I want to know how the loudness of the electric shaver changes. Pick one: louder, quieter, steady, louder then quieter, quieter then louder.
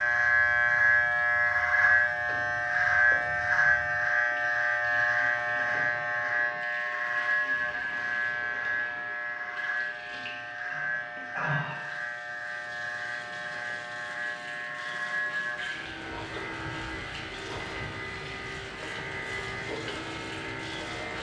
quieter.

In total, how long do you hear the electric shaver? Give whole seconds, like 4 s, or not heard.
21 s.